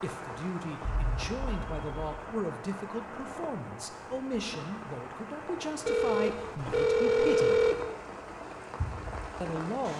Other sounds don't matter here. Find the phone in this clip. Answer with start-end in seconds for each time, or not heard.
0.8-2.2, 5.8-7.8.